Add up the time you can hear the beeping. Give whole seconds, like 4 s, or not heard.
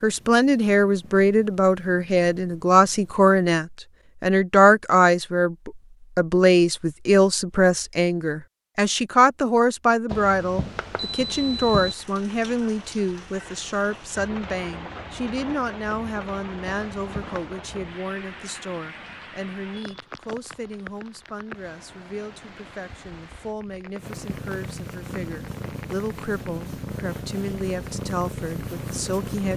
3 s.